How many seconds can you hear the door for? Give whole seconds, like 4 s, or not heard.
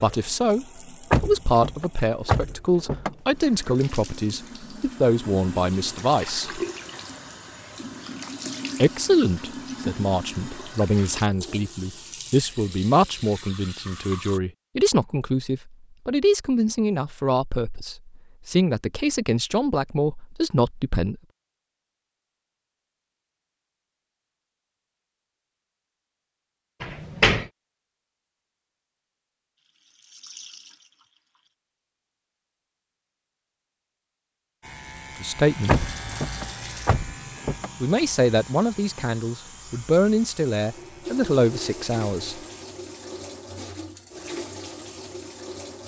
5 s.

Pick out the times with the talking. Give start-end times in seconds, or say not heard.
0.0-6.6, 8.8-21.1, 35.2-35.8, 37.8-42.4.